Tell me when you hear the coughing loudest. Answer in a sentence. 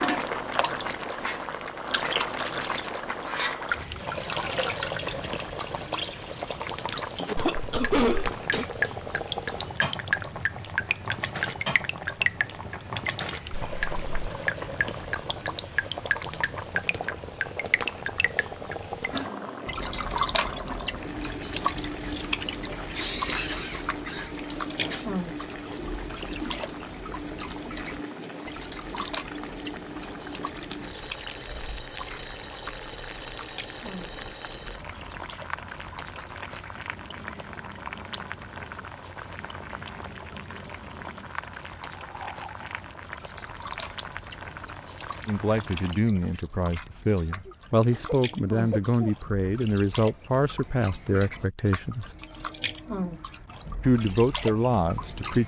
The volume of the coughing peaks at 8 seconds.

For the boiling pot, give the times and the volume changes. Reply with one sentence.
You can hear the boiling pot from 0.0 to 46.0 s, getting quieter.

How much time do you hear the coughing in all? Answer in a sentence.
The coughing can be heard for 5 seconds in total.